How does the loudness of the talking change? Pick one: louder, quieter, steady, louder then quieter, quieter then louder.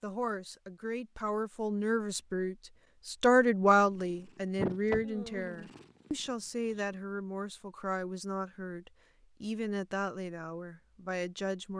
louder then quieter.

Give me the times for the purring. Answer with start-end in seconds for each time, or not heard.
4.0-6.8.